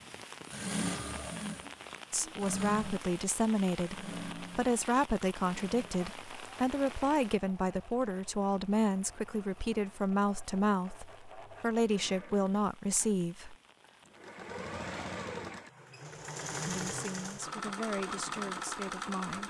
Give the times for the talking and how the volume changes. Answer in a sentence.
You can hear the talking from 2.1 to 13.6 s, at a steady volume; and briefly from 16.6 to 19.4 s.